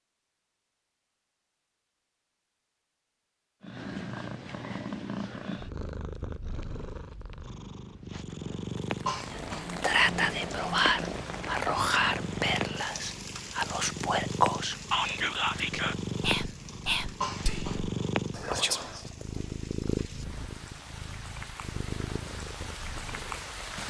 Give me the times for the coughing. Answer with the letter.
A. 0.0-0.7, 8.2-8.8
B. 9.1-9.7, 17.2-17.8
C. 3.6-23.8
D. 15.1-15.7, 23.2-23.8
B.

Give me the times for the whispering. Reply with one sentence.
You can hear the whispering from 9.3 to 19.1 s.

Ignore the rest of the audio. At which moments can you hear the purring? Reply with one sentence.
The purring can be heard from 3.6 to 23.8 s.